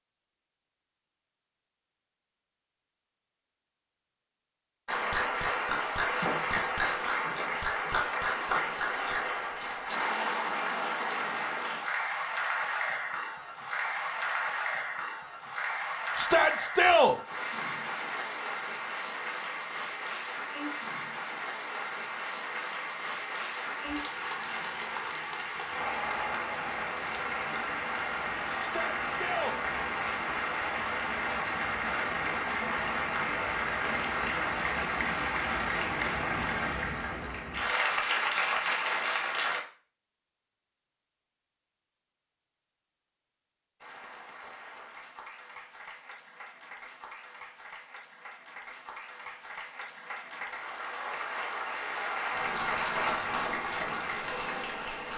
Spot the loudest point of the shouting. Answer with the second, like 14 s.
17 s.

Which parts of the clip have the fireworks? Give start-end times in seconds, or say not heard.
not heard.